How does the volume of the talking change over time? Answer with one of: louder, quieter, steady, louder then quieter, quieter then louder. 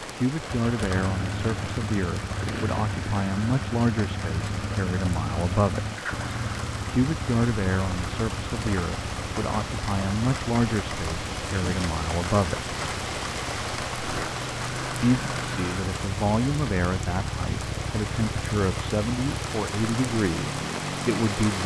steady.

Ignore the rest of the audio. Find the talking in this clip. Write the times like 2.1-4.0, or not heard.
0.1-5.8, 6.8-12.6, 15.0-21.6.